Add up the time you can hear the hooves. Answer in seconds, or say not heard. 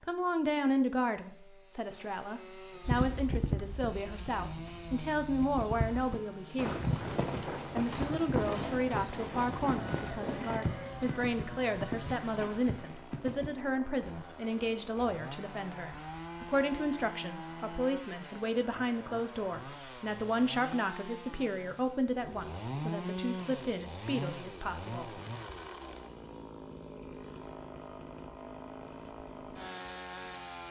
11 s.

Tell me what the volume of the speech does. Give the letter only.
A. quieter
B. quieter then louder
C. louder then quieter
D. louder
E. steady
E.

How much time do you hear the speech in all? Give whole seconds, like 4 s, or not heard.
24 s.